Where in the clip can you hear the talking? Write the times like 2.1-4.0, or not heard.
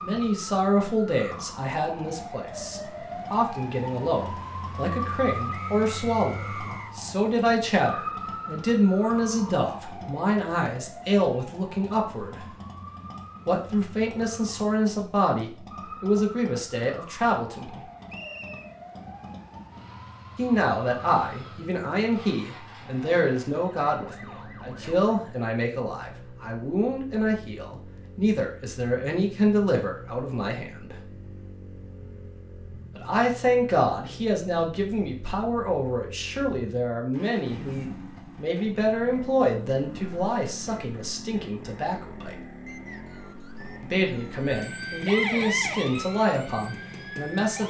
0.0-12.4, 13.4-17.8, 20.4-30.9, 33.0-42.4, 43.8-47.6.